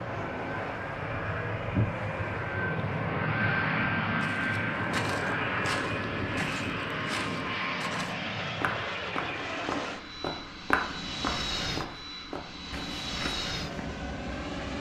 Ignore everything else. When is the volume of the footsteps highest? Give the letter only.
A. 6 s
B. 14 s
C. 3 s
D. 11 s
D.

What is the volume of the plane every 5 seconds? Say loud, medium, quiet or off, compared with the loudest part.
loud, loud, medium.